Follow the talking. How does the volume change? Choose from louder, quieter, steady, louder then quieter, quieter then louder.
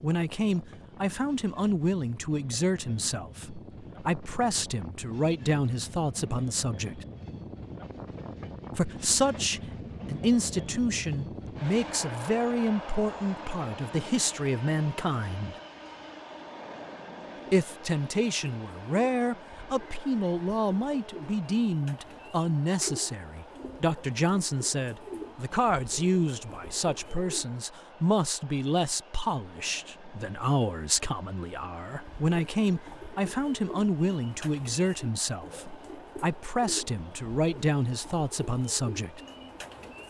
steady.